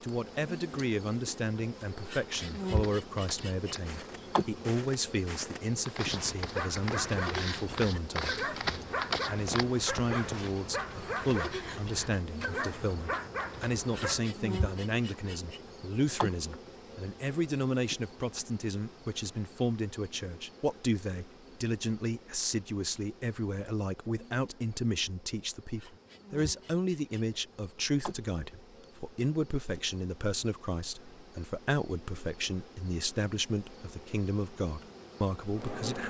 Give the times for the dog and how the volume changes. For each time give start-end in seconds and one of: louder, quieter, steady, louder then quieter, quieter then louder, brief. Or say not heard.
6.0-14.2 steady.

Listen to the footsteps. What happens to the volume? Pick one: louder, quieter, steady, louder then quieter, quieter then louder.
louder.